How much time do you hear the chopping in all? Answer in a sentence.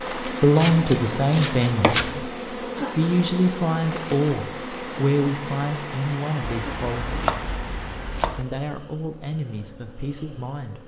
The chopping can be heard for 4 seconds in total.